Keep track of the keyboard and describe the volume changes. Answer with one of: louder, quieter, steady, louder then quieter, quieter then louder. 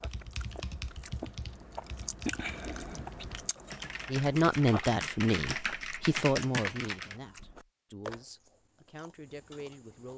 quieter then louder.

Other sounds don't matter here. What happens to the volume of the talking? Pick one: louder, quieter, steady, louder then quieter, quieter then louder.
quieter.